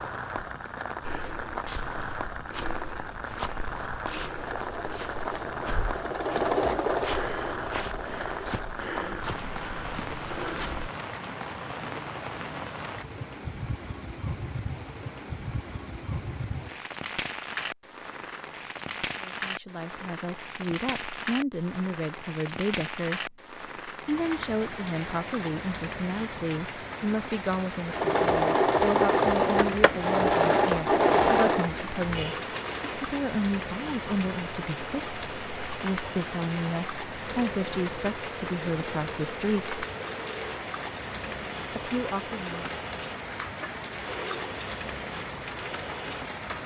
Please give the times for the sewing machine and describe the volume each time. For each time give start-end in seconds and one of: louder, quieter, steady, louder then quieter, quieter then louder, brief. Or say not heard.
4.2-8.8 louder then quieter
27.9-46.6 quieter.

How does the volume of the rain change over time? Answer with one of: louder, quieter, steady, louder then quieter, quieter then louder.
steady.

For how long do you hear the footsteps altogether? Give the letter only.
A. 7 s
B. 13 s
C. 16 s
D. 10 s
D.